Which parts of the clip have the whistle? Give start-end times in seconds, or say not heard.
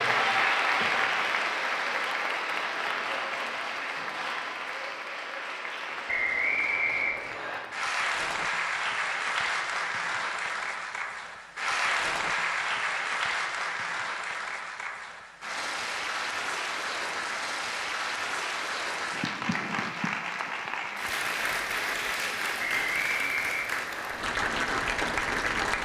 6.0-7.6, 22.6-24.1.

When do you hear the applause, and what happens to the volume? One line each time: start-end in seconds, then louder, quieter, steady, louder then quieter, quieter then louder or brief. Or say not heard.
0.0-25.8 steady.